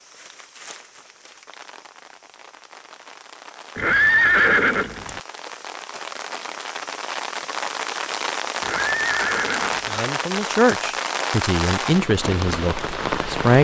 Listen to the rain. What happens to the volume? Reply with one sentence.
The volume of the rain goes up.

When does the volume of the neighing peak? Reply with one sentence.
The volume of the neighing peaks at 4 seconds.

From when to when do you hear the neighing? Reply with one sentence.
You can hear the neighing from 3.8 to 5.2 s and from 8.6 to 10.1 s.